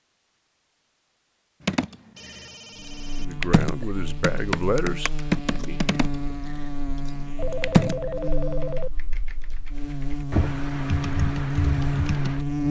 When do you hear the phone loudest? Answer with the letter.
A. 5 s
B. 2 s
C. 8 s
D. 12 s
C.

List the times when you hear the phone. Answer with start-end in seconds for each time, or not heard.
2.1-3.3, 7.3-8.9.